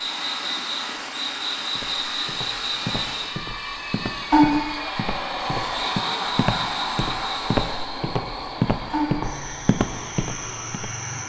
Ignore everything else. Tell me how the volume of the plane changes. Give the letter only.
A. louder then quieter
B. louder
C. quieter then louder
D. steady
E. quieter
A.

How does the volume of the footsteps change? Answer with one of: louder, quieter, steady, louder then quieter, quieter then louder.
louder.